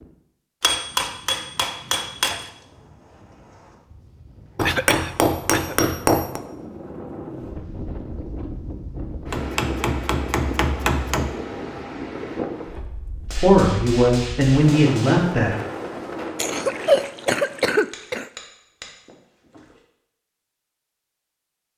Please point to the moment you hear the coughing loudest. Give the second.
17 s.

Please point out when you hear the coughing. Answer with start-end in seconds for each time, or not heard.
4.7-5.8, 16.4-18.3.